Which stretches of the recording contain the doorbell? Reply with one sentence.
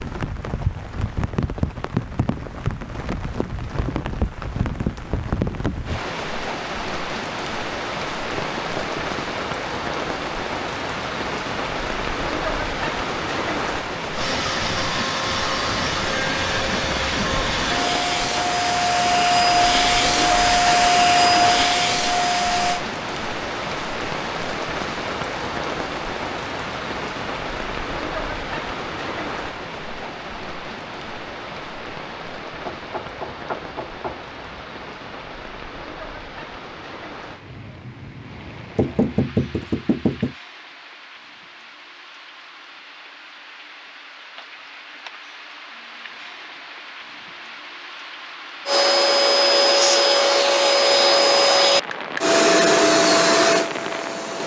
You can't hear the doorbell here.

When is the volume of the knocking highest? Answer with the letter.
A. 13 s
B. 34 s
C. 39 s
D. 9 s
C.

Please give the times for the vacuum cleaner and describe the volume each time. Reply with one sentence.
The vacuum cleaner can be heard from 14.1 to 22.8 s, getting louder; and from 48.6 to 54.4 s, at a steady volume.